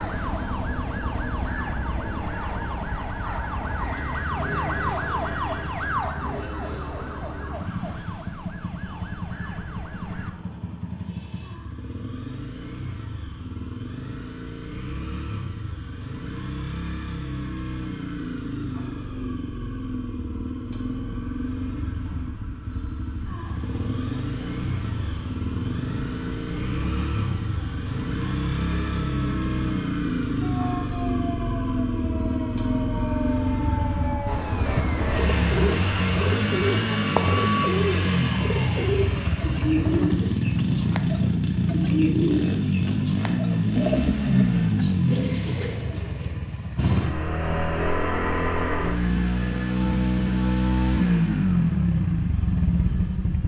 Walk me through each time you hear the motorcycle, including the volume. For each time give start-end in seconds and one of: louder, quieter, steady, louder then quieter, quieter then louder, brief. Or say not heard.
0.0-53.4 louder.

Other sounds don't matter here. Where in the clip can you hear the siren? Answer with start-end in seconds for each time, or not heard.
0.0-10.3, 23.4-37.7.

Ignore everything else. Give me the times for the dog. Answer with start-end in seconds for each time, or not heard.
not heard.